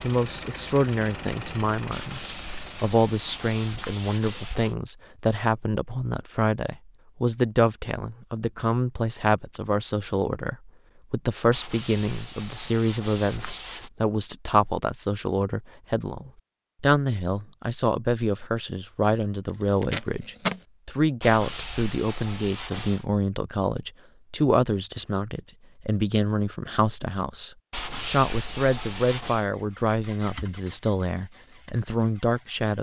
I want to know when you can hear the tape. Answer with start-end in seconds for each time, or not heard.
19.4-20.6.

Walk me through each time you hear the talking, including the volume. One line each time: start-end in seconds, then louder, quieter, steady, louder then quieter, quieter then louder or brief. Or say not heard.
0.0-2.2 brief
2.8-32.7 steady.